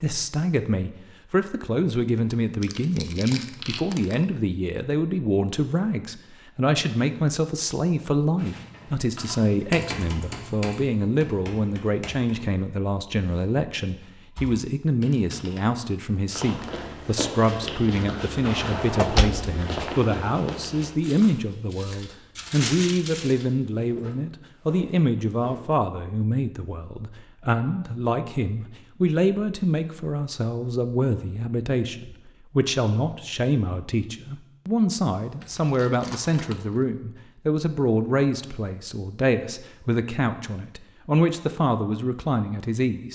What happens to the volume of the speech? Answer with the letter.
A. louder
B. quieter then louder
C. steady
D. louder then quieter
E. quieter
C.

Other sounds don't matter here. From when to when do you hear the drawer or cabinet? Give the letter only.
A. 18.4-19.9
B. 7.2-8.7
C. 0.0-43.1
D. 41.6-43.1
A.